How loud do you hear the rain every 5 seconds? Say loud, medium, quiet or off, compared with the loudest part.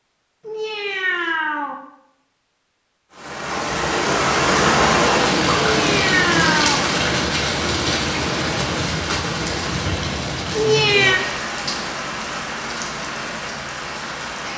loud, loud, medium.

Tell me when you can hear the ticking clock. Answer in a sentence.
You can't hear the ticking clock here.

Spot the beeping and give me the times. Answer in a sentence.
You can't hear the beeping here.